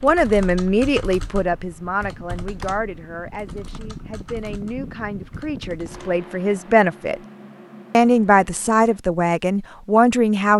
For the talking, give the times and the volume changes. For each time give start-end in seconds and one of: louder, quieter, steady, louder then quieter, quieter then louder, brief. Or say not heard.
0.0-7.2 quieter then louder
7.9-10.5 brief.